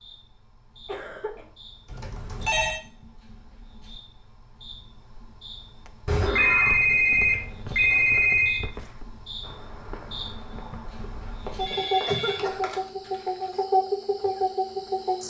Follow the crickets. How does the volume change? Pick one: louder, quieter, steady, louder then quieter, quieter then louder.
louder.